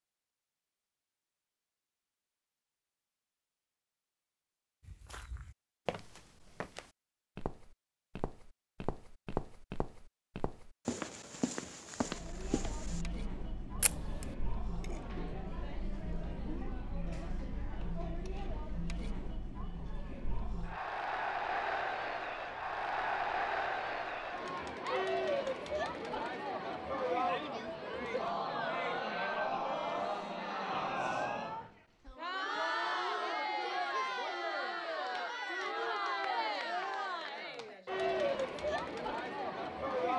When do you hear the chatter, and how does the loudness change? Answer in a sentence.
You can hear the chatter from 12.0 to 40.1 s, getting louder.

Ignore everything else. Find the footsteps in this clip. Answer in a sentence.
You can hear the footsteps from 4.8 to 13.1 s.